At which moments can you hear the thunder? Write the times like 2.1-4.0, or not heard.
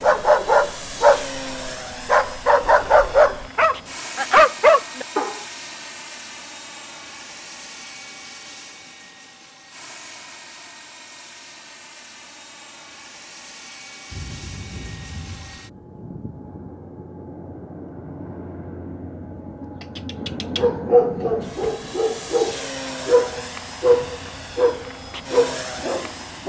14.1-15.6.